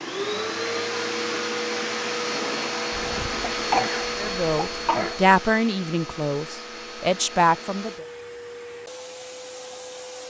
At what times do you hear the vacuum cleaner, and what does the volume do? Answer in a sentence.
The vacuum cleaner can be heard from 0.0 to 10.2 s, getting quieter.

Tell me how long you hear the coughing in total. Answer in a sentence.
You can hear the coughing for 2 seconds altogether.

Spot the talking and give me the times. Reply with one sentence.
You can hear the talking from 4.2 to 7.9 s.